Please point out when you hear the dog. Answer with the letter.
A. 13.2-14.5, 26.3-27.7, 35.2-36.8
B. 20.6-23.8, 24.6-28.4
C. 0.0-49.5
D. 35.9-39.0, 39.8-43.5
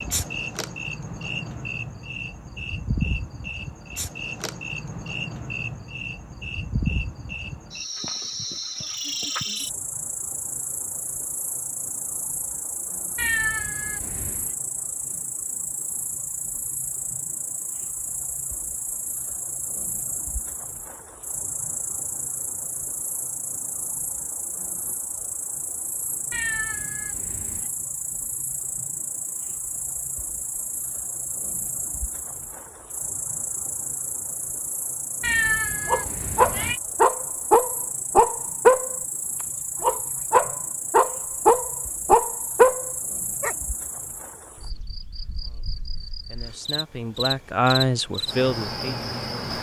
D.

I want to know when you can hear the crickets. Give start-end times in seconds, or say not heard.
0.0-49.5.